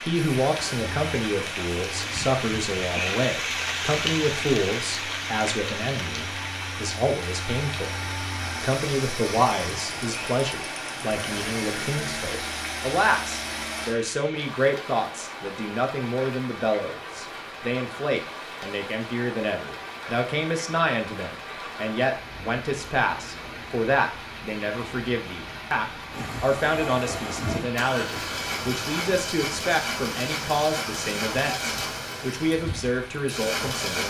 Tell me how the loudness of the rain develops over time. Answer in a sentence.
The loudness of the rain goes down.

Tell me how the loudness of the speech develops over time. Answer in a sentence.
The volume of the speech stays about the same.